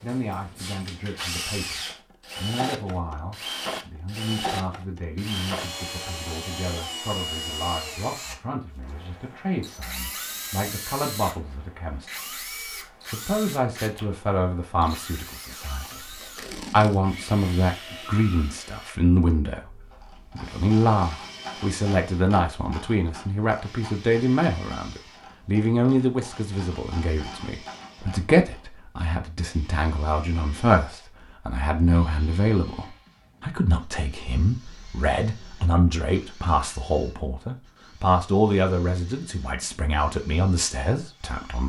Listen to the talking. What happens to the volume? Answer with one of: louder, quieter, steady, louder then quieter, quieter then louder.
louder.